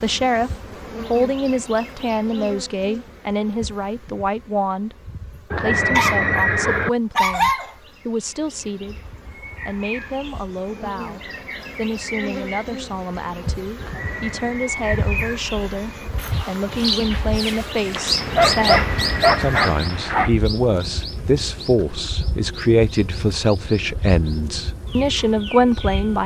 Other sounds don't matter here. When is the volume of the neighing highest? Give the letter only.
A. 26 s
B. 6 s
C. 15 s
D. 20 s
B.